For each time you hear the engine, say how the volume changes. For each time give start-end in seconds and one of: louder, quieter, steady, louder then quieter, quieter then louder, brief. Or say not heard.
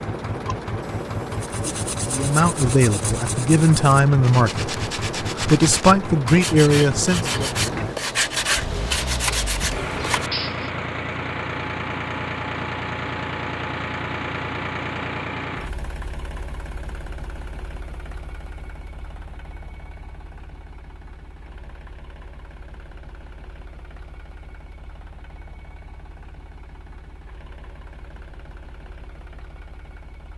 0.0-30.3 quieter.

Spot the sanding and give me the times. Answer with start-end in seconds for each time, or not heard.
1.3-10.7.